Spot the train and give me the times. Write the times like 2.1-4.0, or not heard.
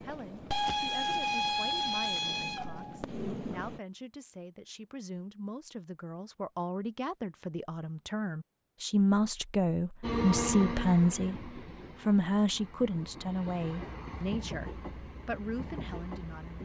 0.0-3.8, 10.0-16.6.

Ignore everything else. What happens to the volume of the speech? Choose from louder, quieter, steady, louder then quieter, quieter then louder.
louder then quieter.